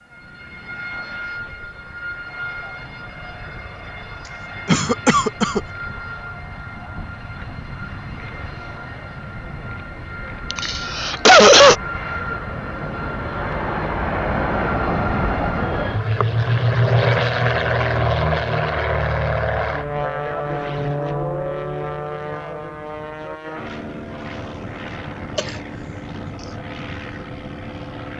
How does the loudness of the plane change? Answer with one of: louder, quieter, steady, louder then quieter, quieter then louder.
louder then quieter.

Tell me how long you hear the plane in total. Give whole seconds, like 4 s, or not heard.
28 s.